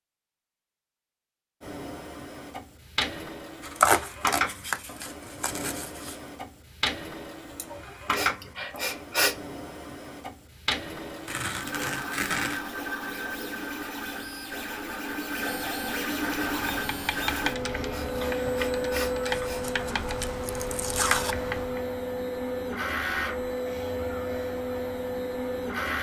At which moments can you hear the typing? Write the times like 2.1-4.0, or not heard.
16.3-21.9.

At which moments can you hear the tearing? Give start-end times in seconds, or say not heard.
3.6-6.2, 11.2-12.6, 19.4-21.4.